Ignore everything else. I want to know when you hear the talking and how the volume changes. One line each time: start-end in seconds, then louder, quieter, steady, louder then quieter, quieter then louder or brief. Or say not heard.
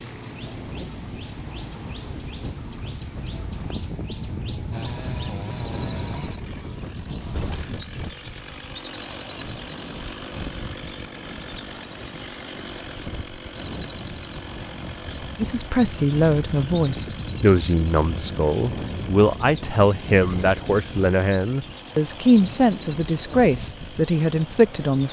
15.3-25.0 steady.